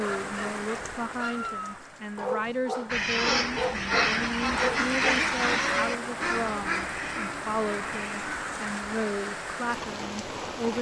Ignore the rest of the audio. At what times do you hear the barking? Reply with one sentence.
The barking can be heard from 0.0 to 5.2 s.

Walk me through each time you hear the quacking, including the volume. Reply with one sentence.
The quacking can be heard from 2.9 to 8.6 s, getting quieter.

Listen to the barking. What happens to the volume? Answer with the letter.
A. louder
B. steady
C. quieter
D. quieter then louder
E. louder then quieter
A.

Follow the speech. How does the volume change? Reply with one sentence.
The volume of the speech stays about the same.